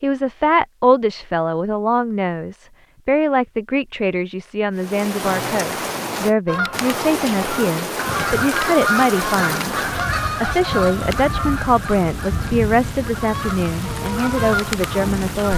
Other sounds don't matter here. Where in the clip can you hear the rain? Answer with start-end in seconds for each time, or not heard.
4.8-15.5.